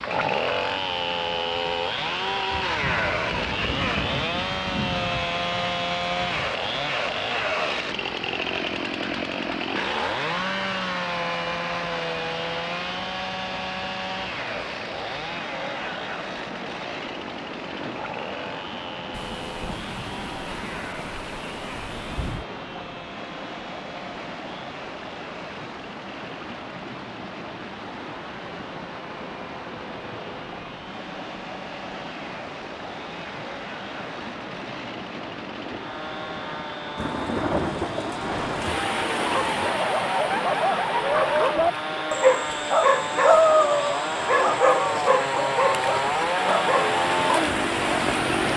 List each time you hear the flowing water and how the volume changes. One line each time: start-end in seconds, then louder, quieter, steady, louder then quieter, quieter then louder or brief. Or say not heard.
0.0-48.5 louder.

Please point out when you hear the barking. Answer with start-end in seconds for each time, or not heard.
39.2-48.1.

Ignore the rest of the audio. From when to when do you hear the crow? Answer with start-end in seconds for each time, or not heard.
not heard.